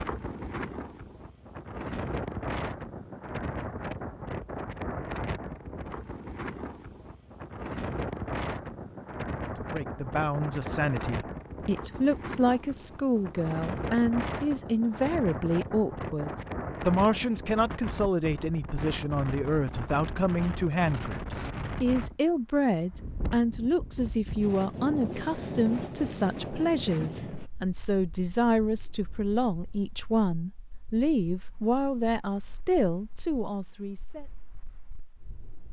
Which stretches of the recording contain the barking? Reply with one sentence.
The barking can't be heard in this clip.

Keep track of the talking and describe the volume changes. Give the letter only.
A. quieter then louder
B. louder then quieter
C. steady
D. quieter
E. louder
C.